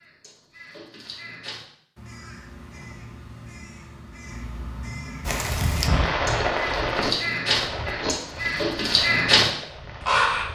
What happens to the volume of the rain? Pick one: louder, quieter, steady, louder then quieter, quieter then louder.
quieter.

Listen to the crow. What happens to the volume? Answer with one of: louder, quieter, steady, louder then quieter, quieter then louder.
louder.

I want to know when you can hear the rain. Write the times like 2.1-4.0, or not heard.
5.2-10.5.